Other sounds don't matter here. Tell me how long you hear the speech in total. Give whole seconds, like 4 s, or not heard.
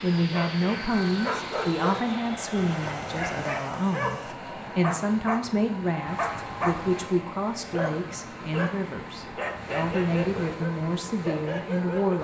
12 s.